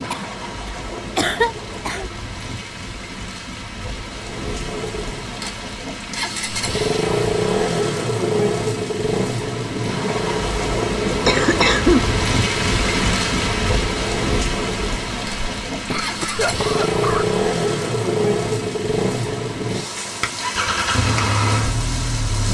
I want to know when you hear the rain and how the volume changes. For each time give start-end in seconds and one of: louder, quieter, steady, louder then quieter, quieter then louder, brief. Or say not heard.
0.0-22.4 louder then quieter.